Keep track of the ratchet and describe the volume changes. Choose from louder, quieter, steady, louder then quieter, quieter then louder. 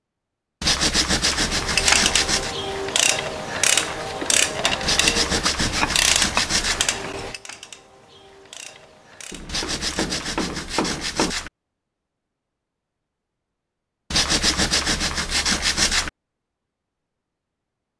quieter.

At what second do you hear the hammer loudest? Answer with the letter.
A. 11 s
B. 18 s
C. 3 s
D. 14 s
A.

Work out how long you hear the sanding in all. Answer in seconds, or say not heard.
8 s.